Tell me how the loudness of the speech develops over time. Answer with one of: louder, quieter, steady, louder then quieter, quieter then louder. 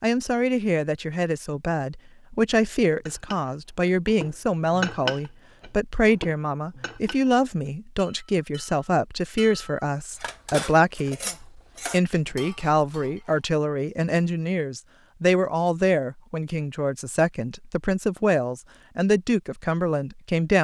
steady.